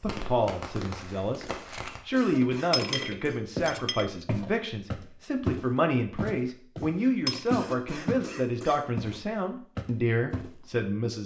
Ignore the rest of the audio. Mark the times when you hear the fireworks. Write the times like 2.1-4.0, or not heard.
0.0-2.0.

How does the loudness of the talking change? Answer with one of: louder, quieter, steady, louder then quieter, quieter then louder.
steady.